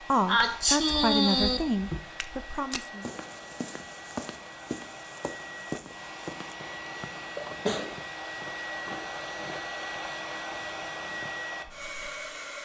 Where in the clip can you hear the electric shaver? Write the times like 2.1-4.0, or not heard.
not heard.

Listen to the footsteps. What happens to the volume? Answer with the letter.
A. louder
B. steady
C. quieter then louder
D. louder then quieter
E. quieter
E.